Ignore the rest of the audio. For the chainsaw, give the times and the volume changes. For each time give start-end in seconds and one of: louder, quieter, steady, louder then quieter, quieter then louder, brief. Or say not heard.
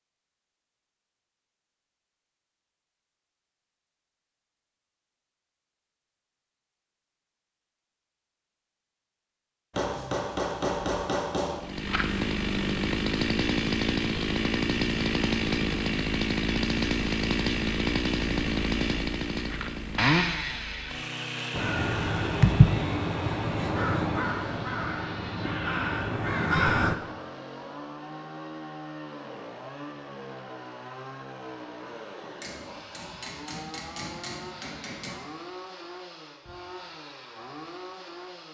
11.6-38.4 quieter.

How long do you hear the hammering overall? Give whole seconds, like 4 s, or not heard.
5 s.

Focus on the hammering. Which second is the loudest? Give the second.
11 s.